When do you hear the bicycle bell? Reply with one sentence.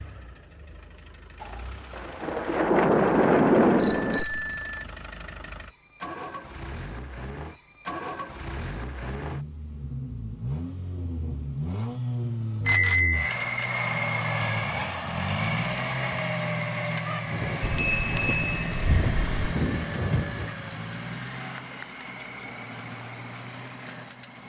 The bicycle bell can be heard from 3.8 to 4.8 s, from 12.7 to 13.3 s and from 17.6 to 19.6 s.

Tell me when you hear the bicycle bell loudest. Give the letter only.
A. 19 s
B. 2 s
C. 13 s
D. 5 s
C.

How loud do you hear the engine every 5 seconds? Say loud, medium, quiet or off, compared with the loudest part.
quiet, medium, loud, loud, medium.